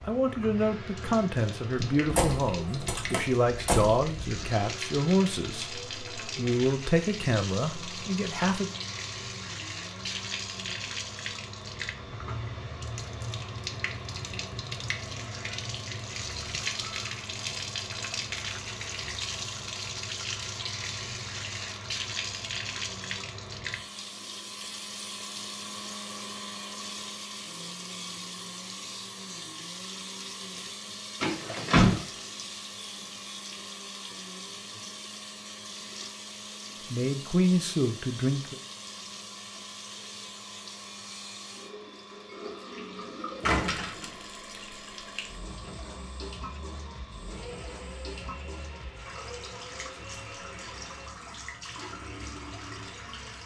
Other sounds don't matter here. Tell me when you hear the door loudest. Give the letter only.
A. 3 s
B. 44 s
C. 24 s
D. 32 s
D.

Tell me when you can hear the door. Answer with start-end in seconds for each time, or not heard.
1.8-4.5, 31.2-32.5, 43.5-44.2.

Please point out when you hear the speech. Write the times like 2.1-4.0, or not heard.
0.1-8.7, 36.9-38.5.